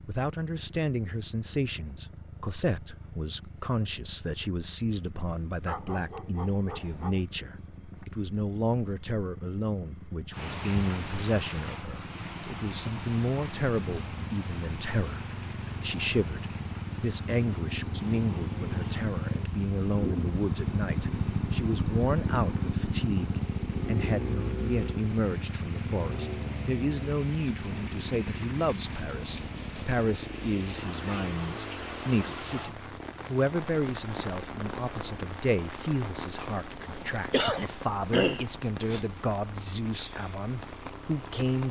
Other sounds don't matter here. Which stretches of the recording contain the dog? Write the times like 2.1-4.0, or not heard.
5.7-7.2.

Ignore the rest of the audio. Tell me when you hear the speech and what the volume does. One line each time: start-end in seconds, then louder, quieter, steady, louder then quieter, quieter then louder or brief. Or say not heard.
0.1-41.6 steady.